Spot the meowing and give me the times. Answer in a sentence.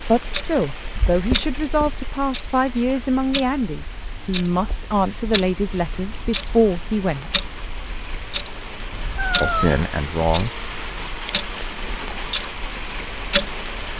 You can hear the meowing from 8.9 to 9.8 s.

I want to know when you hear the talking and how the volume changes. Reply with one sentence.
You can hear the talking from 0.1 to 7.4 s, at a steady volume; and briefly from 9.4 to 10.6 s.